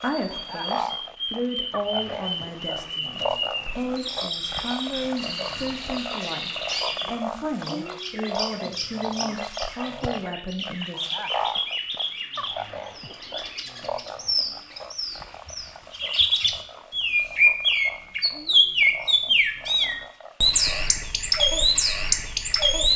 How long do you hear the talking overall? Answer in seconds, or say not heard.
11 s.